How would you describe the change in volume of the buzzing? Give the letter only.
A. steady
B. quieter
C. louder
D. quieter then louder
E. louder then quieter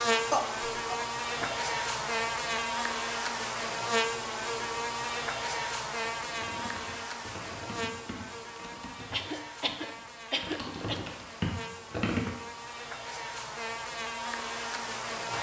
D.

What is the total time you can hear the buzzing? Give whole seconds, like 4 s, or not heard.
15 s.